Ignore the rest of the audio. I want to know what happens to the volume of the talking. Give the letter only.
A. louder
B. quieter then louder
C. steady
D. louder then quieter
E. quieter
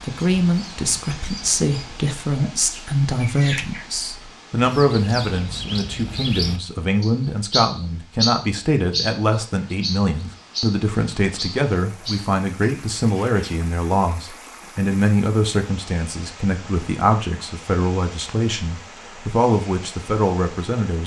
C.